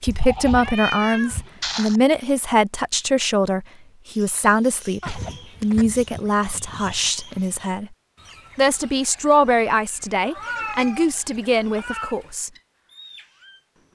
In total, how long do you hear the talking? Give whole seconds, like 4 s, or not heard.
12 s.